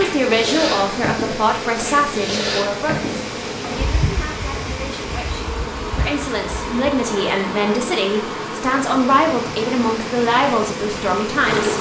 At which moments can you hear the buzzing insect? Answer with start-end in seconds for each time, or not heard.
0.0-11.7.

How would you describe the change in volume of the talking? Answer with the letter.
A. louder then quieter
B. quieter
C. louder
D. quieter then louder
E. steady
D.